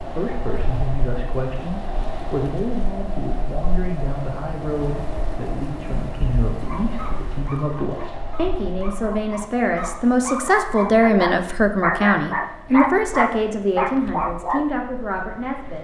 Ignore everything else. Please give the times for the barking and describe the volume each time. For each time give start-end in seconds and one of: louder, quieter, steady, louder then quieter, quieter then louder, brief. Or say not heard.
6.6-14.7 louder.